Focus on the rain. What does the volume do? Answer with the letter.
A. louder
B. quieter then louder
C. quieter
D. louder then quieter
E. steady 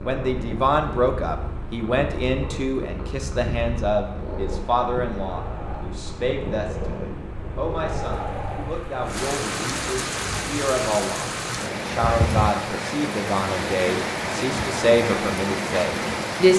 A.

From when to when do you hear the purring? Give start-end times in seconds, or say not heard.
0.0-9.1.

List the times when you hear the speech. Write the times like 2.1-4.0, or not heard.
0.0-16.5.